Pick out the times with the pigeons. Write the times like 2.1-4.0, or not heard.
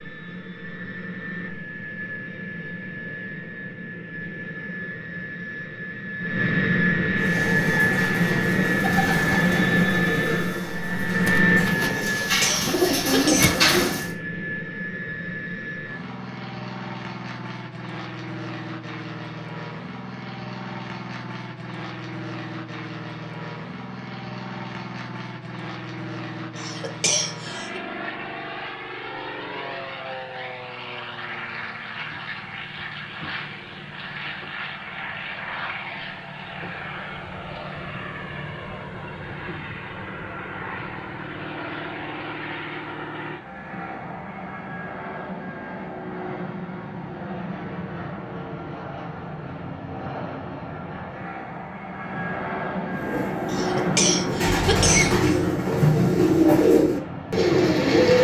7.2-14.1, 52.9-58.2.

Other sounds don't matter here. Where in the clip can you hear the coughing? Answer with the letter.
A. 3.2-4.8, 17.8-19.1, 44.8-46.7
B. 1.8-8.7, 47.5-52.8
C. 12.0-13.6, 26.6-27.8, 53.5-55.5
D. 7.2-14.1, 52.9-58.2
C.